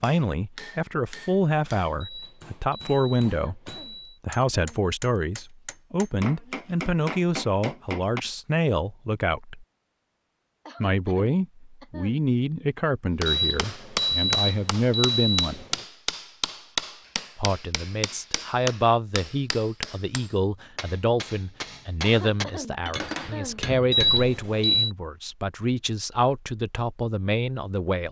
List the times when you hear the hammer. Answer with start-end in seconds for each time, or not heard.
0.0-8.2, 13.2-24.3.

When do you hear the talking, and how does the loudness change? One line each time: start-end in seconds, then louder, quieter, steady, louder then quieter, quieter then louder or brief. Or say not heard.
0.0-9.7 steady
10.8-15.7 quieter then louder
17.4-28.0 steady.